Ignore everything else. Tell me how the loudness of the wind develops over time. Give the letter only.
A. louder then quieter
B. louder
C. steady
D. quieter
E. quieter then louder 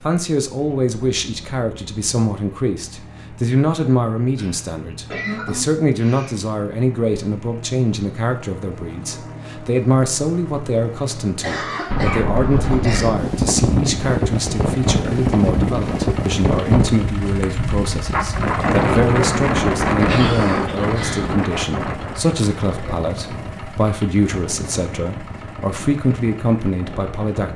D.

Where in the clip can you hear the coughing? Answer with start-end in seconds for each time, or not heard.
4.3-6.3, 11.4-13.1, 20.0-21.3.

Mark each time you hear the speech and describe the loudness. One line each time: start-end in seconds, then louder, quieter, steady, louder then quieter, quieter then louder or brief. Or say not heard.
0.0-27.5 steady.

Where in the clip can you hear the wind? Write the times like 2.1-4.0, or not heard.
11.8-27.5.